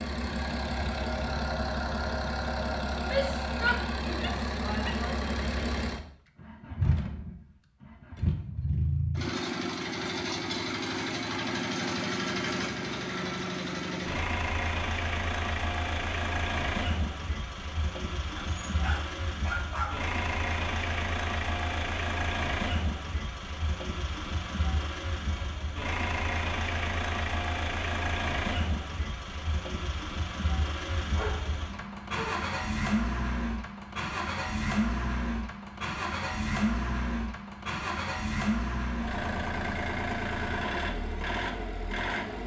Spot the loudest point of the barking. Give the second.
20 s.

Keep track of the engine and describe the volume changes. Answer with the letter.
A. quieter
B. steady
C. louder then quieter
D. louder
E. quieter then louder
B.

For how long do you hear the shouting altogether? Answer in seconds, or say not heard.
2 s.